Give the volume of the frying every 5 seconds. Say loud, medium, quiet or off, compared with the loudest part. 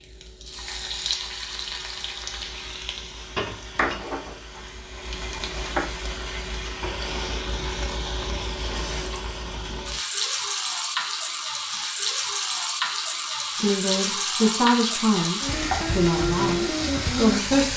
medium, medium, loud, loud.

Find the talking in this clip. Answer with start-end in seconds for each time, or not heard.
13.5-17.7.